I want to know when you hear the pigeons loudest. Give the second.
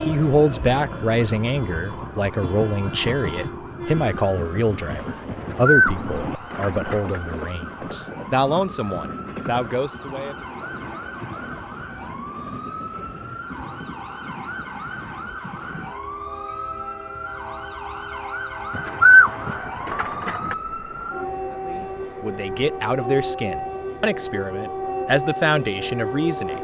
19 s.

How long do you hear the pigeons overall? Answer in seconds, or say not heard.
4 s.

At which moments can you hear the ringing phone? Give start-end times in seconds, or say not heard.
not heard.